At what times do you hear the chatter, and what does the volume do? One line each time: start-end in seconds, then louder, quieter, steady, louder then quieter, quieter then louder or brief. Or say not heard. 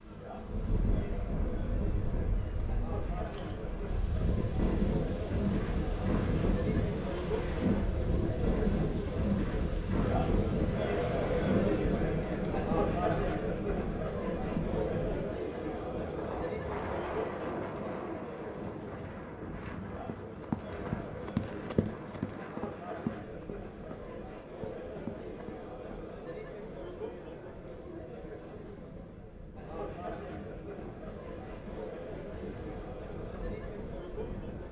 0.0-34.6 louder then quieter.